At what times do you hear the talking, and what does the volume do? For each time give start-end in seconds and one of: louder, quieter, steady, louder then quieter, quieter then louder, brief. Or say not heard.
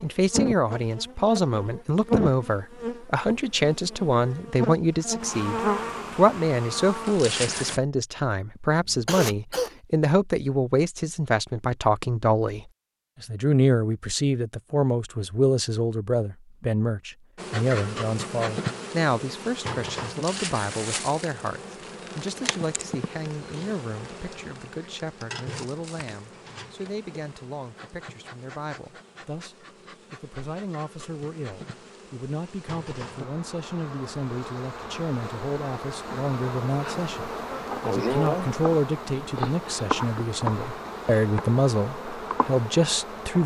0.0-43.4 quieter then louder.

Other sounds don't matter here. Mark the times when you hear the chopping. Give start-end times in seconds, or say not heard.
not heard.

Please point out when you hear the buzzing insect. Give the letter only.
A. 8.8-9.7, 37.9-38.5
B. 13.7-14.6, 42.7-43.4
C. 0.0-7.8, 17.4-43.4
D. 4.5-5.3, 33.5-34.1
C.